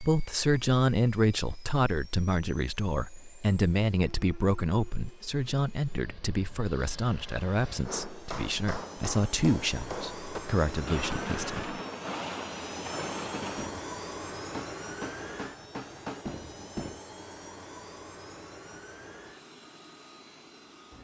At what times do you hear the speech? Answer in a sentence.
You can hear the speech from 0.0 to 11.8 s.